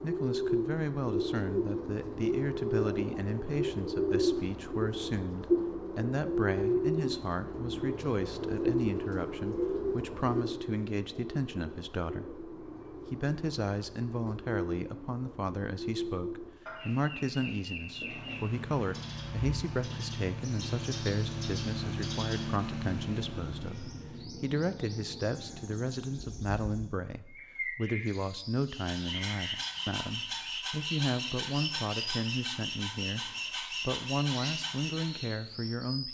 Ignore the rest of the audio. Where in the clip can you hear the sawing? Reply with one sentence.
The sawing can be heard from 28.6 to 35.3 s.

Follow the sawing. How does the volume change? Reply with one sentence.
The volume of the sawing stays about the same.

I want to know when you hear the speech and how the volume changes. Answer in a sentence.
The speech can be heard from 0.0 to 36.0 s, at a steady volume.